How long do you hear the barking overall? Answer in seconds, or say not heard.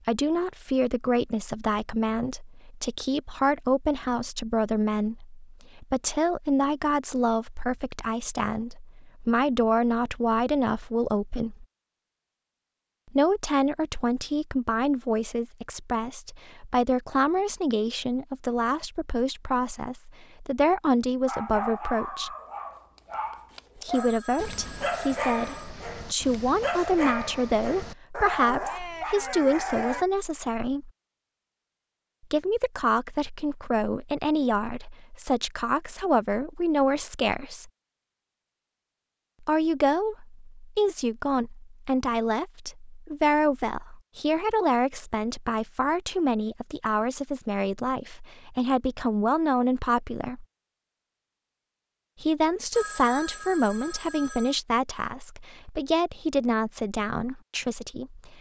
9 s.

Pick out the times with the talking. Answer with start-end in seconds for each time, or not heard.
0.1-11.7, 13.1-22.3, 23.9-30.9, 32.3-37.7, 39.4-50.5, 52.2-58.3.